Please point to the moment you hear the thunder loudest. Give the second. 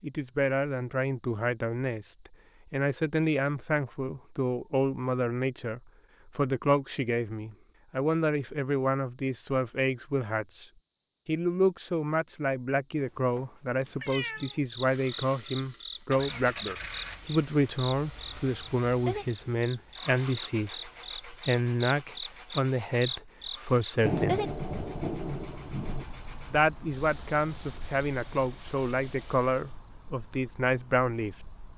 24 s.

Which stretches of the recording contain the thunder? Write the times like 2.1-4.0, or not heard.
24.0-26.1.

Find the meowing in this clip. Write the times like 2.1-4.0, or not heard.
12.9-14.6.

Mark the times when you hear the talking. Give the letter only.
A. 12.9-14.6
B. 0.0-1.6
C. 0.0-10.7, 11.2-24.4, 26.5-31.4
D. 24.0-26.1
C.